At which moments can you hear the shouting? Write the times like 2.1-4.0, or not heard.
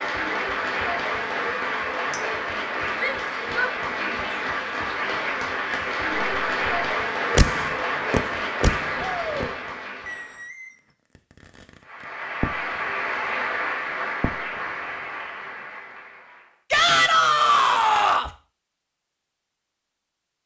3.0-4.2, 8.9-9.6, 16.7-18.3.